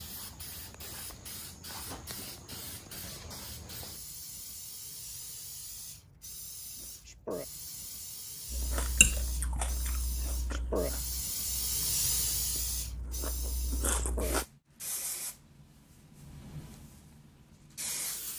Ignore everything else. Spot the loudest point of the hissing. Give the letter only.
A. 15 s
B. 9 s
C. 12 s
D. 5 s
C.